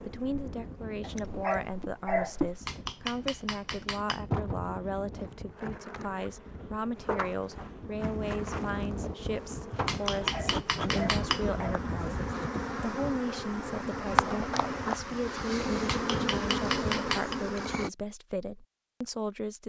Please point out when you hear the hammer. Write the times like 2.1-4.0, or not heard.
2.6-4.2, 9.8-11.4, 15.8-17.4.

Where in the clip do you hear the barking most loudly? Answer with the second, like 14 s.
2 s.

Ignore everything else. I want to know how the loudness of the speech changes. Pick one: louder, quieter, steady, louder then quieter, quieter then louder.
steady.